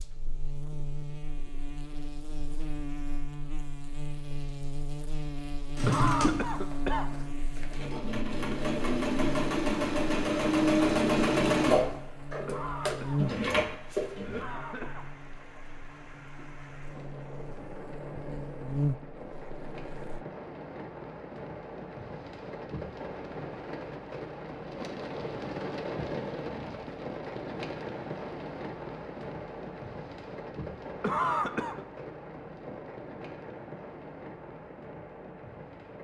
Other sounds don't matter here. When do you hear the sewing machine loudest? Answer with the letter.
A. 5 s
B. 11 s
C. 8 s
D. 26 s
B.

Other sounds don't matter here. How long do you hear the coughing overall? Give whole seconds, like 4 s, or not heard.
5 s.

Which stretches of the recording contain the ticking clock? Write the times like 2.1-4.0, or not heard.
not heard.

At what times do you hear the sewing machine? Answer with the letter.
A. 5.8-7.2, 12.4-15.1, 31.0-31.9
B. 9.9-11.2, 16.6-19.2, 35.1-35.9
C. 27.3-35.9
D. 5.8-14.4
D.